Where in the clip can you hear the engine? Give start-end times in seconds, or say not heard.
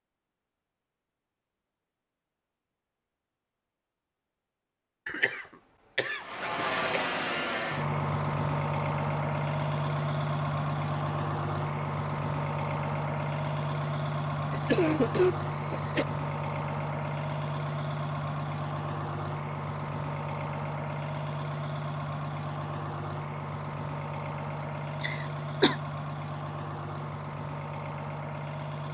6.2-28.8.